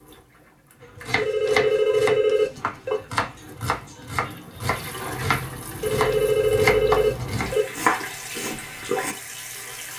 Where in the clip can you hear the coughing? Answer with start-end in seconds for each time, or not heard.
not heard.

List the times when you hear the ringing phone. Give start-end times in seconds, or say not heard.
1.1-3.0, 5.8-7.7.